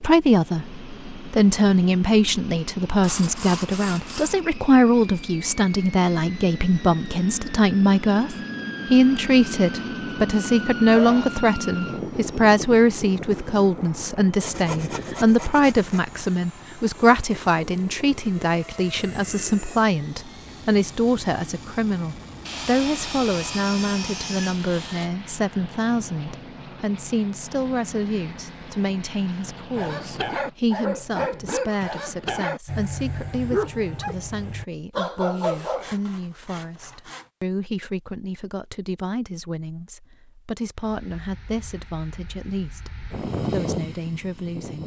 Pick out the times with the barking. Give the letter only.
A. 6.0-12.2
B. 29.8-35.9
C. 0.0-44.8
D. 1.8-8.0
B.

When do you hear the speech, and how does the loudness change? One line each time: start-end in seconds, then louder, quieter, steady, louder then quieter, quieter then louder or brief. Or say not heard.
0.0-44.8 quieter.